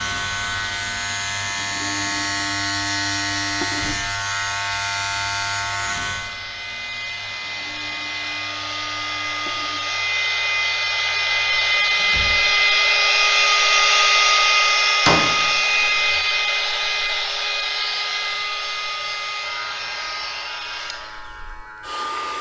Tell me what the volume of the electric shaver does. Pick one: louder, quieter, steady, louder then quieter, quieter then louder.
quieter then louder.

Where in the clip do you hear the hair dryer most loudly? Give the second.
14 s.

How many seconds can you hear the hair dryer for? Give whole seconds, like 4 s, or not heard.
22 s.